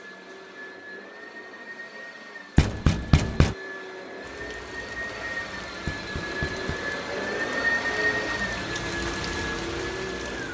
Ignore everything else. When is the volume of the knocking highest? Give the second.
3 s.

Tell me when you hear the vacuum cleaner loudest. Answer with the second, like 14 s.
8 s.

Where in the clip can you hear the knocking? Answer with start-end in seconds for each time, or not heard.
2.5-3.5, 5.8-6.8.